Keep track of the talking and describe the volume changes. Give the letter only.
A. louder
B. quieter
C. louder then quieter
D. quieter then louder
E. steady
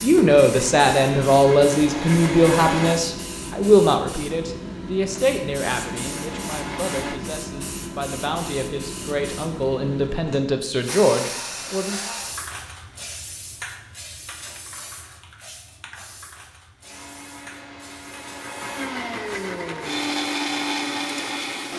D.